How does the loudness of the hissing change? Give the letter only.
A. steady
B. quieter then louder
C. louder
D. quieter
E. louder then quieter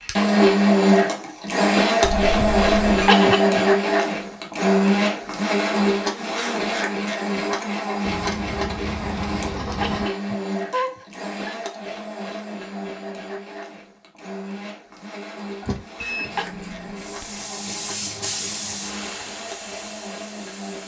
E.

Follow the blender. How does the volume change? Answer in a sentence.
The volume of the blender goes down.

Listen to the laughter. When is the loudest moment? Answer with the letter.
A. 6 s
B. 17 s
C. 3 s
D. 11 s
C.